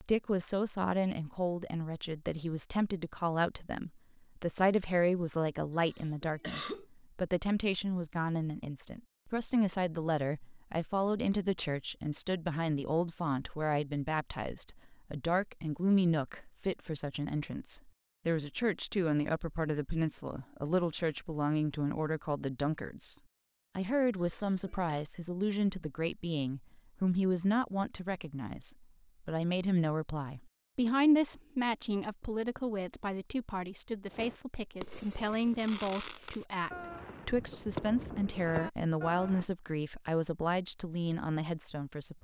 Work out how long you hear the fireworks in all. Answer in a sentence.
The fireworks can be heard for 5 seconds in total.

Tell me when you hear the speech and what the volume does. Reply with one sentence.
You can hear the speech from 0.0 to 42.1 s, at a steady volume.